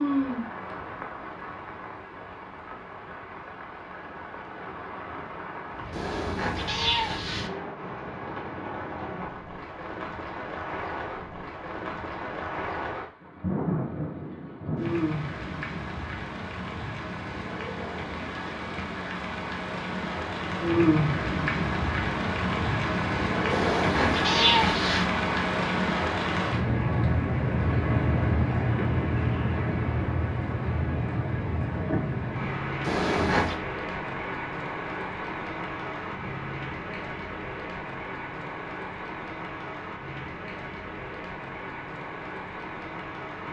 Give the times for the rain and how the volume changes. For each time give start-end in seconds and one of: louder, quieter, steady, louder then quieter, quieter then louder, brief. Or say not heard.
0.0-43.4 louder then quieter.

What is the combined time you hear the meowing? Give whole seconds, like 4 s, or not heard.
4 s.